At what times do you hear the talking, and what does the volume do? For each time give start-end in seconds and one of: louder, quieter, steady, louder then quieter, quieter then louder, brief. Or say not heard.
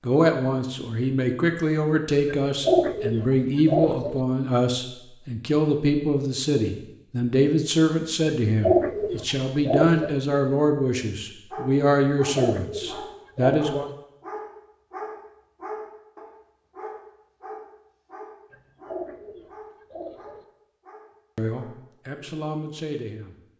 0.1-13.8 steady
21.4-23.4 brief.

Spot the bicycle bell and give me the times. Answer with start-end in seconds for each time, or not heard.
not heard.